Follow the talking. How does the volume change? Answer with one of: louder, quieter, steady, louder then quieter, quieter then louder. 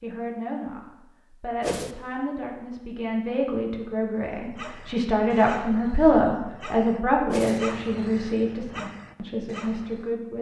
louder then quieter.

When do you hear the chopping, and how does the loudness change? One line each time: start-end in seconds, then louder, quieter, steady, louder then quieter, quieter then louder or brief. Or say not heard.
not heard.